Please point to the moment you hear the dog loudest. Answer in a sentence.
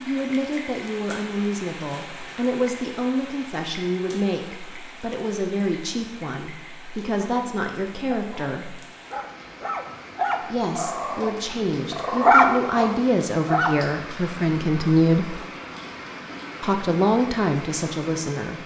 The loudest moment of the dog is at 12 seconds.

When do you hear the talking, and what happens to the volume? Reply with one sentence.
The talking can be heard from 0.1 to 8.8 s, at a steady volume; from 10.4 to 15.4 s, getting louder; and briefly from 16.6 to 18.6 s.